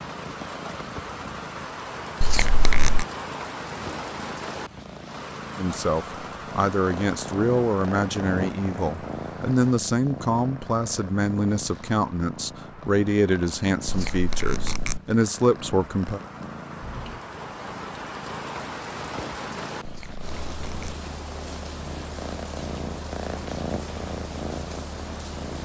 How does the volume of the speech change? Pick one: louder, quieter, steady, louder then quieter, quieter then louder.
steady.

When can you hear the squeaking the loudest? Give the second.
3 s.